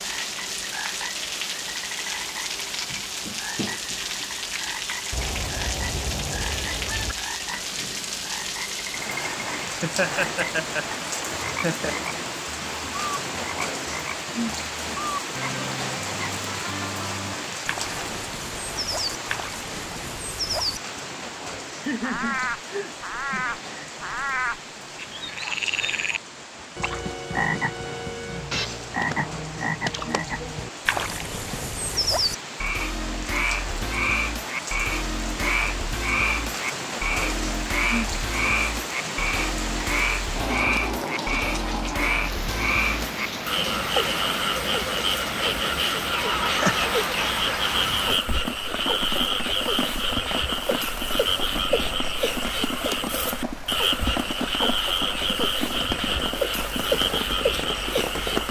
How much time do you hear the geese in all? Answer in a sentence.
You can hear the geese for 4 seconds altogether.